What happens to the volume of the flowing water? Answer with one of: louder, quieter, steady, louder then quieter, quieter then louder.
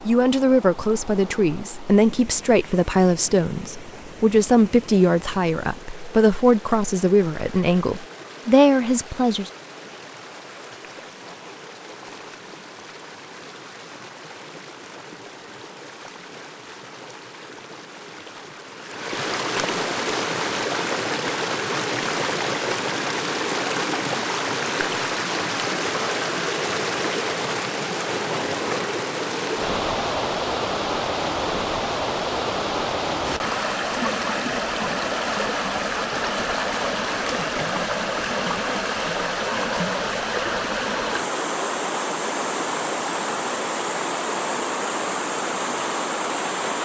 louder.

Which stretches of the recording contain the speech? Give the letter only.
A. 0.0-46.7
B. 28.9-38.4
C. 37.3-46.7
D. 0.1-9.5
D.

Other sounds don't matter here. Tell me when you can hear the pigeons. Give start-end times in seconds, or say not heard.
not heard.